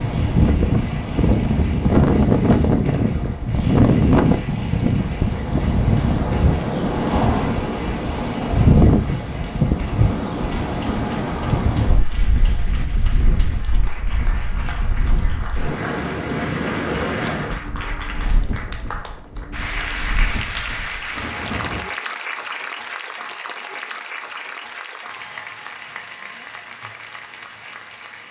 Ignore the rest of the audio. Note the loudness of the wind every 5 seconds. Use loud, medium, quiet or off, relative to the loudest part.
loud, loud, medium, medium, quiet, off.